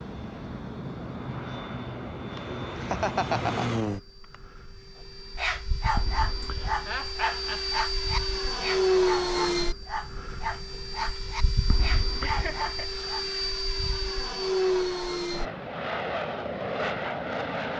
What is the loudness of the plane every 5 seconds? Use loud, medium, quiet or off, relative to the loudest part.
medium, loud, loud, loud.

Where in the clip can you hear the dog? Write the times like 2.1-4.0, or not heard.
5.3-13.2.